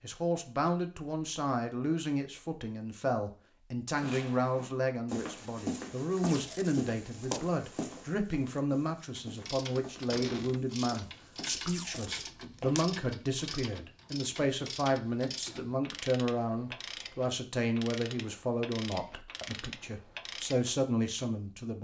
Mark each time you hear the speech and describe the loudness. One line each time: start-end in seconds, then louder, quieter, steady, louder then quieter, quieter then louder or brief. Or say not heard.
0.0-21.7 steady.